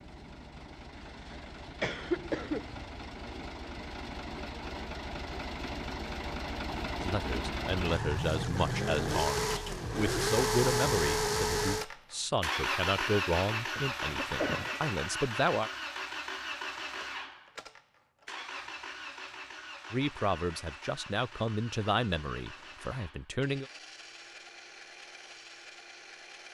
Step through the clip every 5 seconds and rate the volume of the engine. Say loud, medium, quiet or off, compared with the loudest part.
quiet, loud, loud, medium, quiet, quiet.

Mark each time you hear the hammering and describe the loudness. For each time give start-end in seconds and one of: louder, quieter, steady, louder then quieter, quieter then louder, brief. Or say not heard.
not heard.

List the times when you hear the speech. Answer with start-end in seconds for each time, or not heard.
7.0-15.7, 19.9-23.6.